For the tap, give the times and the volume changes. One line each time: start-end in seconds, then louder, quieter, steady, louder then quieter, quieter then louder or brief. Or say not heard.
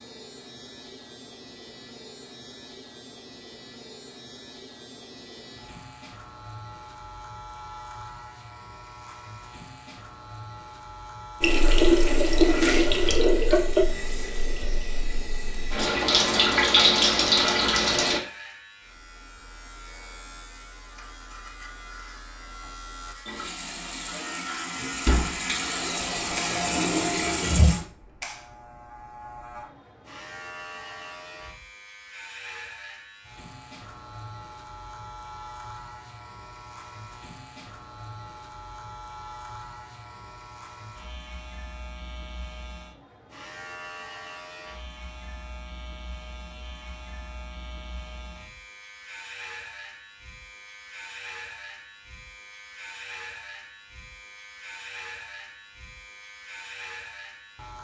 11.4-18.2 quieter then louder
23.2-27.9 louder.